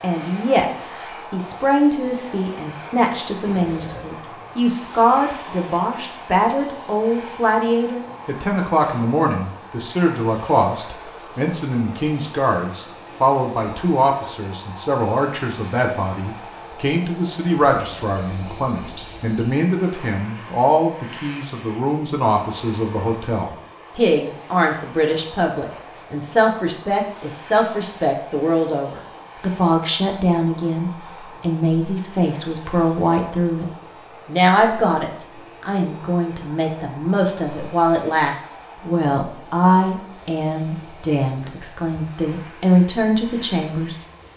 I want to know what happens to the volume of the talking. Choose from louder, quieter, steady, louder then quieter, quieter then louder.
steady.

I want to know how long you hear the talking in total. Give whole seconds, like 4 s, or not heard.
44 s.